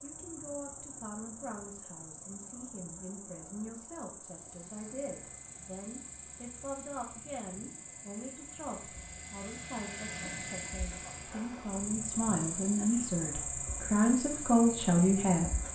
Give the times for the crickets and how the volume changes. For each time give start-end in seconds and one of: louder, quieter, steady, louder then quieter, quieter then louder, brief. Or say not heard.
0.0-15.7 louder.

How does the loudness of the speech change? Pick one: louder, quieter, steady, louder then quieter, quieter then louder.
louder.